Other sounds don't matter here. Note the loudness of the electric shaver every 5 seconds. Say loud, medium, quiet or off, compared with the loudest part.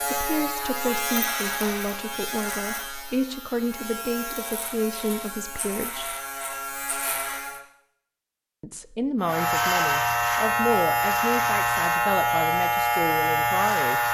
medium, medium, loud.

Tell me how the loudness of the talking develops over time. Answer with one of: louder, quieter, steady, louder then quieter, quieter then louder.
steady.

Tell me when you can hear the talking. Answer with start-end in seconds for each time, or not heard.
0.1-6.2, 8.6-14.0.